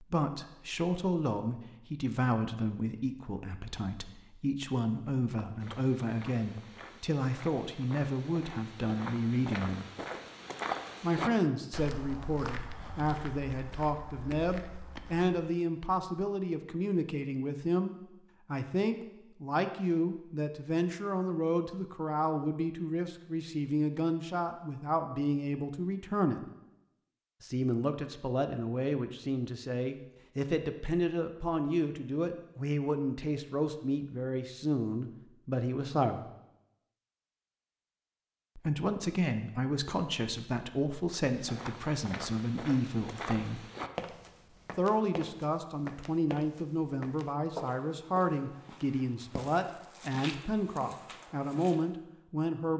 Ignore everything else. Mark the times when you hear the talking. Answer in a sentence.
The talking can be heard from 0.0 to 9.8 s, from 11.0 to 26.4 s, from 27.4 to 36.2 s, from 38.5 to 43.6 s and from 44.8 to 52.7 s.